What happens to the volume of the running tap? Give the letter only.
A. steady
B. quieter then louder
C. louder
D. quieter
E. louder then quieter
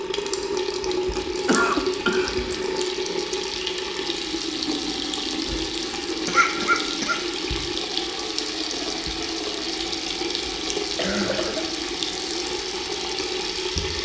A.